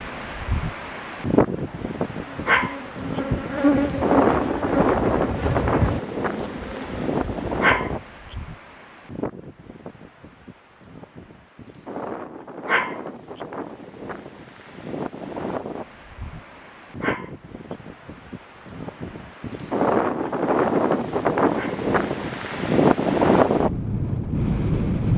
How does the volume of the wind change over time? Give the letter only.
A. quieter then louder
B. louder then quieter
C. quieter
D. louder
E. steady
A.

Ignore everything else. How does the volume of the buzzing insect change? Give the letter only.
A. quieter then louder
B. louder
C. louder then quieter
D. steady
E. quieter
C.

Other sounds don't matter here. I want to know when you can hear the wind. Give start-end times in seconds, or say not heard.
0.0-25.1.